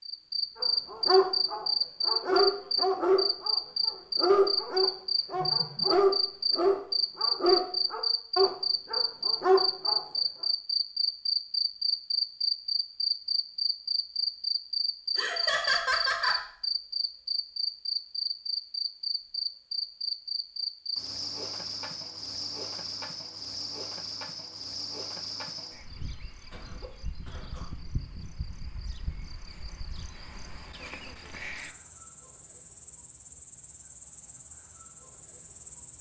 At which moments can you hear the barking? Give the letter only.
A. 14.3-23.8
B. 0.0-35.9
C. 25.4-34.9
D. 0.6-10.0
D.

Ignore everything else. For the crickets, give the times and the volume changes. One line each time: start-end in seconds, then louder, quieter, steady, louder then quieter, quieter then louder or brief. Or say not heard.
0.0-35.9 quieter.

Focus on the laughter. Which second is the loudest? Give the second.
16 s.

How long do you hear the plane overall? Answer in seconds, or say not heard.
not heard.